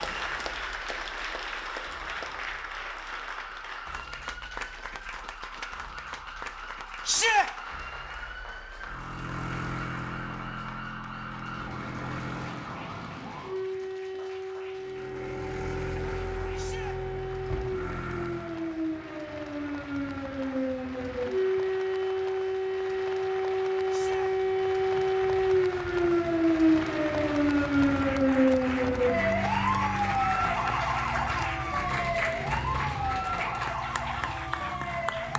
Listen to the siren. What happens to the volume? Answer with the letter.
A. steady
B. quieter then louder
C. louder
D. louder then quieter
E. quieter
C.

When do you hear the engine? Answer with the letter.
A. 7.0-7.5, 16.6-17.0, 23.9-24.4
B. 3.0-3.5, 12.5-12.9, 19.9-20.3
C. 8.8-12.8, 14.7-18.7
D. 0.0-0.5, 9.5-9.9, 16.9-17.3
C.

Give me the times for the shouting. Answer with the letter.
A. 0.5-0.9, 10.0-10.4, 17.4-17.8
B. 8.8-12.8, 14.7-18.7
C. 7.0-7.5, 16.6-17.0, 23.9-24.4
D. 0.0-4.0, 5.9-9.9
C.